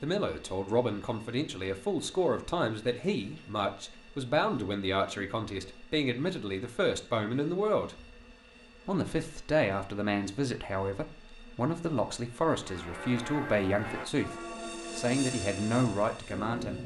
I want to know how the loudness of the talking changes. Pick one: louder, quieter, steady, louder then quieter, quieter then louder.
steady.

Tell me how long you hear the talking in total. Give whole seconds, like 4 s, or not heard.
16 s.